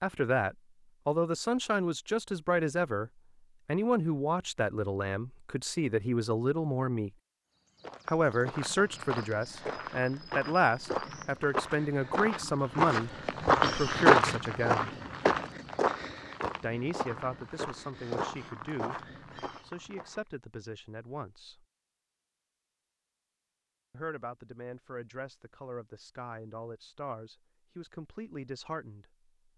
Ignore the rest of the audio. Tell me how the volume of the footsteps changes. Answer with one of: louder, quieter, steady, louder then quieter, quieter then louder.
louder then quieter.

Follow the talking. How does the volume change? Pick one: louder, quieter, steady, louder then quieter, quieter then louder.
quieter.